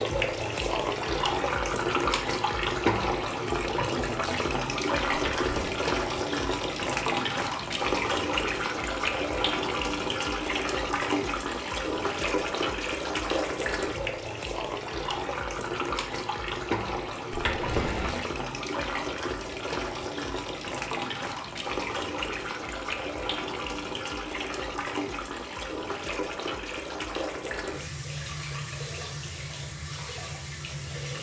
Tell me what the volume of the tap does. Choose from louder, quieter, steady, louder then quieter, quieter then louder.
quieter.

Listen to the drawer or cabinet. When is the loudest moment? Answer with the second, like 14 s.
18 s.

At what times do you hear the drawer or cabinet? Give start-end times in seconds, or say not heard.
5.3-5.8, 17.3-18.2.